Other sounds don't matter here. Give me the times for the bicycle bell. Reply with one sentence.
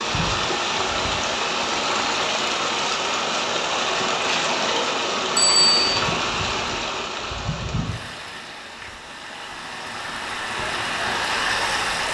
The bicycle bell can be heard from 5.3 to 6.0 s.